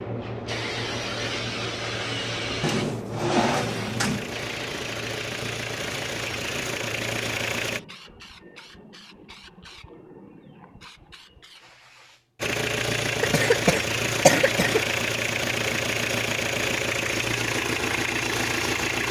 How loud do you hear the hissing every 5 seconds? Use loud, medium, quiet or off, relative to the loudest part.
loud, medium, quiet, off.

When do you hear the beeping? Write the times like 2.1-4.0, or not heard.
not heard.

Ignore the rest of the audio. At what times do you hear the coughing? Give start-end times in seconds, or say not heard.
13.2-14.8.